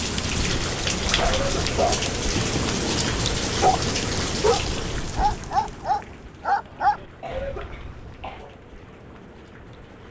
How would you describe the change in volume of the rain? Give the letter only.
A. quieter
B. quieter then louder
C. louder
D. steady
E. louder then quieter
A.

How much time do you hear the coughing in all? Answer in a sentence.
You can hear the coughing for 2 seconds altogether.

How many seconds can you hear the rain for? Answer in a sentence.
You can hear the rain for 10 seconds altogether.